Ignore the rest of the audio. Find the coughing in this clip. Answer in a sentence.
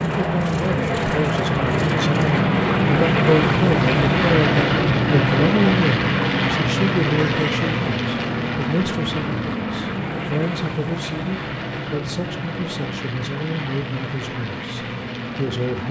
The coughing can be heard from 7.2 to 7.8 s.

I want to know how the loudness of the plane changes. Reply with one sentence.
The volume of the plane goes down.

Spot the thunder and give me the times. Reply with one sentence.
The thunder can't be heard in this clip.